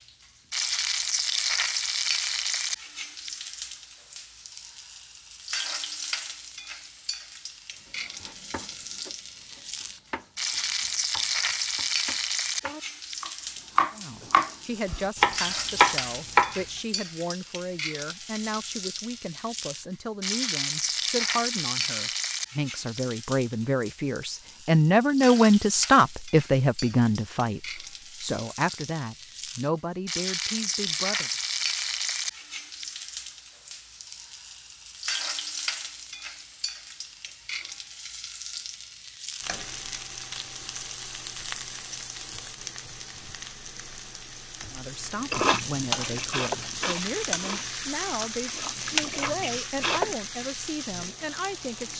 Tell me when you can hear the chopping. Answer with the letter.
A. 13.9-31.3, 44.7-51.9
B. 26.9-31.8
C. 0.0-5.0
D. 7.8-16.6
D.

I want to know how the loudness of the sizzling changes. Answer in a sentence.
The loudness of the sizzling stays about the same.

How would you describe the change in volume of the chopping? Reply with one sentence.
The volume of the chopping goes up.